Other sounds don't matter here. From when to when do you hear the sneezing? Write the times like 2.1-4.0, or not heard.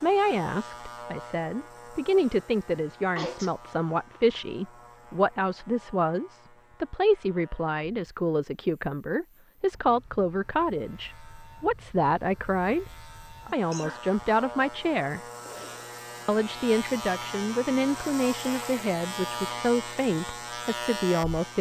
2.7-3.5, 13.4-14.1.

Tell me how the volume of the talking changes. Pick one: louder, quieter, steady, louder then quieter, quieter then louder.
steady.